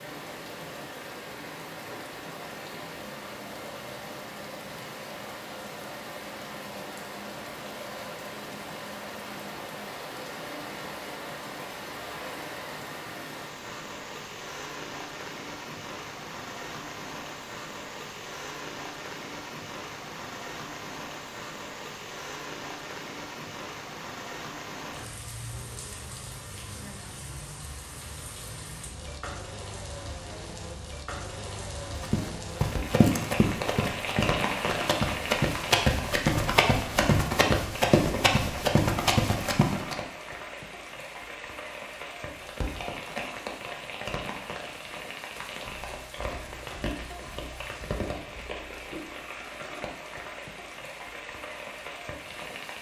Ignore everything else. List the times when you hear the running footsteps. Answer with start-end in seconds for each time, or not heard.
32.0-40.0.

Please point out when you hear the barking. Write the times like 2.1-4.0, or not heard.
not heard.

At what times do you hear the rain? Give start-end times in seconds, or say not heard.
0.0-52.7.